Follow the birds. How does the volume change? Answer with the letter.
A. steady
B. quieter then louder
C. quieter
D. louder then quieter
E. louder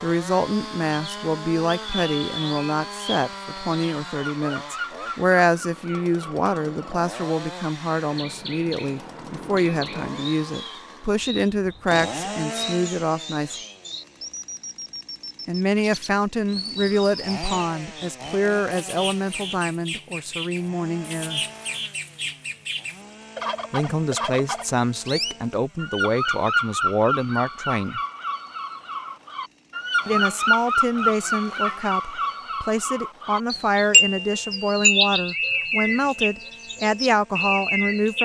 E.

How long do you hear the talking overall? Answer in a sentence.
You can hear the talking for 32 seconds altogether.